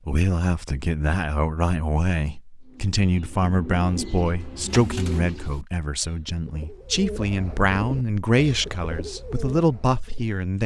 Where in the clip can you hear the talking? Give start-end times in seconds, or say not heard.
0.1-10.6.